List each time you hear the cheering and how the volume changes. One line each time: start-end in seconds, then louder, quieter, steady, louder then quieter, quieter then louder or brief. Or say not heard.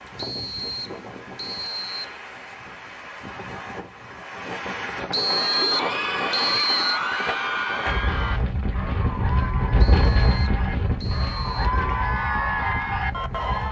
5.1-13.6 quieter then louder.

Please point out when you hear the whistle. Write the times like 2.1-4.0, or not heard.
0.1-2.2, 5.1-7.0, 9.8-11.8.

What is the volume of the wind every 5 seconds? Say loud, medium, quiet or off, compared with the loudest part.
medium, loud, loud.